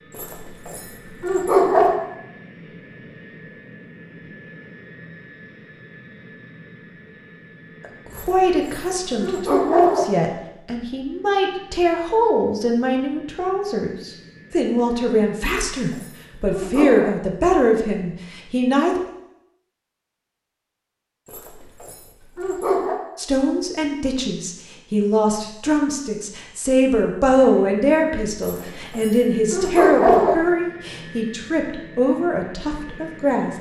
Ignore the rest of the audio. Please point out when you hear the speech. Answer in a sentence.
You can hear the speech from 7.8 to 19.0 s and from 23.1 to 33.5 s.